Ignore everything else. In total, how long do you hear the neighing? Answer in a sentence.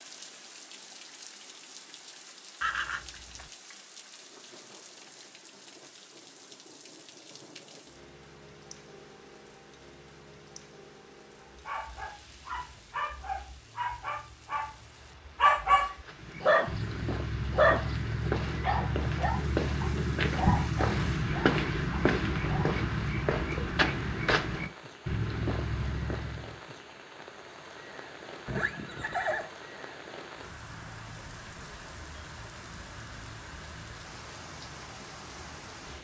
You can hear the neighing for 2 seconds altogether.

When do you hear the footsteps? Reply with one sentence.
You can hear the footsteps from 16.0 to 26.6 s.